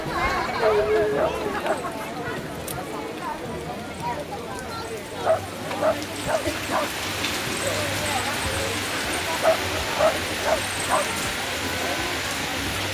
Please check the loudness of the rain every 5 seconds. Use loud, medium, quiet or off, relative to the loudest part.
quiet, loud, loud.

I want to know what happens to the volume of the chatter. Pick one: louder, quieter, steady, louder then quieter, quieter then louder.
quieter.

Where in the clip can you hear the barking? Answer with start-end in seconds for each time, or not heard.
0.7-1.8, 5.0-6.9, 9.2-11.1.